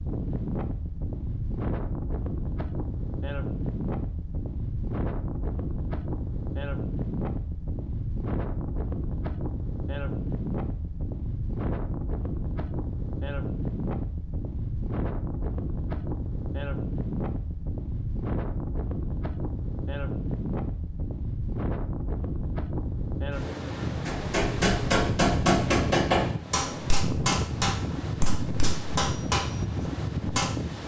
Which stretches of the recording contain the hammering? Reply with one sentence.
You can hear the hammering from 24.1 to 30.5 s.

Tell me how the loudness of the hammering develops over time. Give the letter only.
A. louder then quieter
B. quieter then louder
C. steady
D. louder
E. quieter
B.